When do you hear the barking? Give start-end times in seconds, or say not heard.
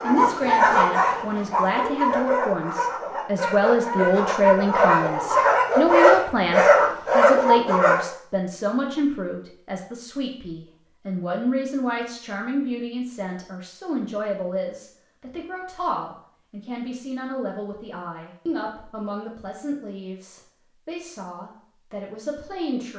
0.0-8.1.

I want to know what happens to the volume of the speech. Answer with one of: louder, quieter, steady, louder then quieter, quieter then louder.
quieter.